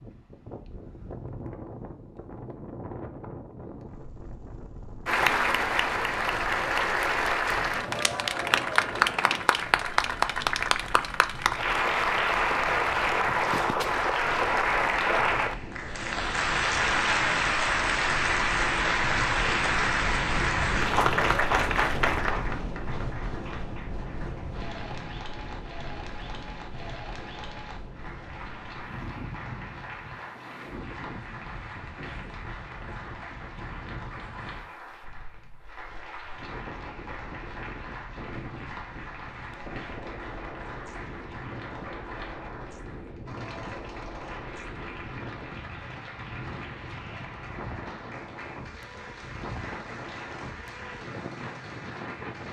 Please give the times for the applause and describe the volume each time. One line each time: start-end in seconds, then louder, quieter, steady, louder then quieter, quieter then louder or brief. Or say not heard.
5.0-52.4 quieter.